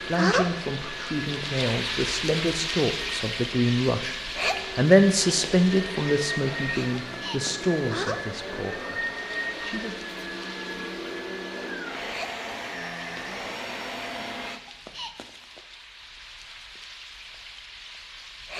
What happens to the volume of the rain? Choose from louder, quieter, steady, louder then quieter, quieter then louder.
quieter.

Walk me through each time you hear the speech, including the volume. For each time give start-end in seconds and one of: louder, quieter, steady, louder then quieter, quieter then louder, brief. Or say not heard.
0.0-9.9 louder then quieter.